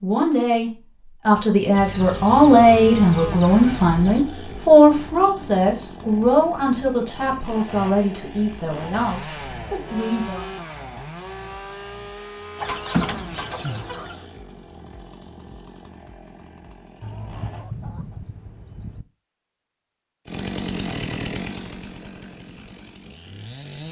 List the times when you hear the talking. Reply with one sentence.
You can hear the talking from 0.0 to 10.5 s.